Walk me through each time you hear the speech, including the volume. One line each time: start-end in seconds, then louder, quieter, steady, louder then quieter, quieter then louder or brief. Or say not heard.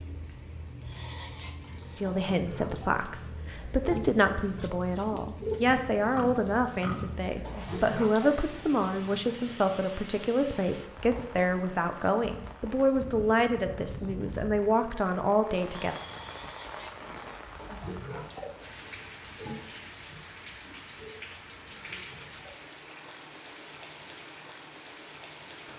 1.9-15.9 steady.